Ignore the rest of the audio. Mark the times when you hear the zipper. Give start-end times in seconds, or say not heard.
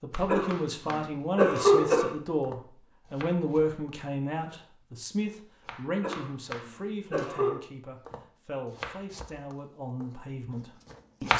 not heard.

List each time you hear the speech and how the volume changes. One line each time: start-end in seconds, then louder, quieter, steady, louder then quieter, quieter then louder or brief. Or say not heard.
0.0-11.3 quieter.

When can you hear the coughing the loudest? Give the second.
2 s.